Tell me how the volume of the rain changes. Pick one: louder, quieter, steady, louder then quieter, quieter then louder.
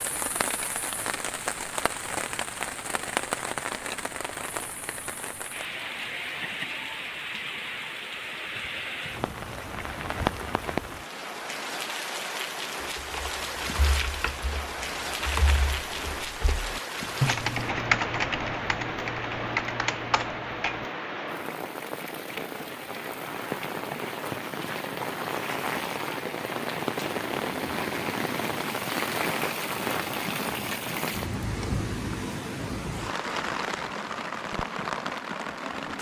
steady.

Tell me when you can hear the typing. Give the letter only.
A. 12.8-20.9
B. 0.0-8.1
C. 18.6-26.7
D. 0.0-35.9
A.